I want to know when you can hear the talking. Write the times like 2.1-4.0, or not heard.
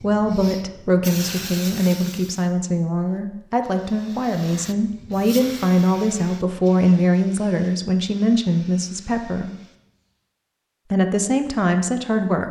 0.0-9.5, 10.9-12.4.